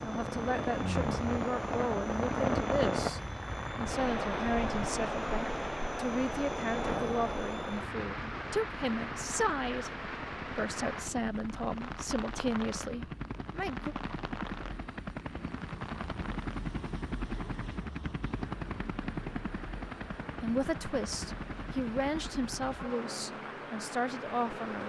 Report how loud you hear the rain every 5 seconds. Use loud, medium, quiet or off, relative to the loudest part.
loud, loud, medium, quiet, quiet.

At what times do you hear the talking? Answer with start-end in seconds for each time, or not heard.
0.0-13.9, 20.4-24.8.